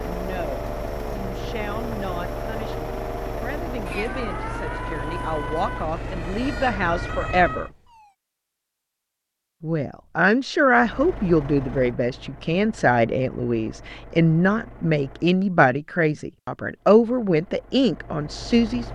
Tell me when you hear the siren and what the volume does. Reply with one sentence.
You can hear the siren from 0.0 to 8.1 s, at a steady volume.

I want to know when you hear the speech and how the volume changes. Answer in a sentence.
You can hear the speech from 0.0 to 7.7 s, getting louder; and from 9.6 to 18.8 s, at a steady volume.